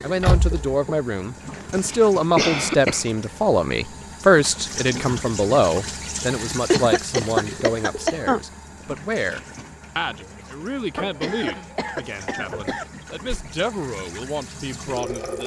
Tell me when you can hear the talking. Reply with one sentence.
The talking can be heard from 0.0 to 15.4 s.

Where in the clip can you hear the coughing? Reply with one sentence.
You can hear the coughing from 1.4 to 3.0 s, from 6.7 to 8.4 s and from 10.9 to 12.8 s.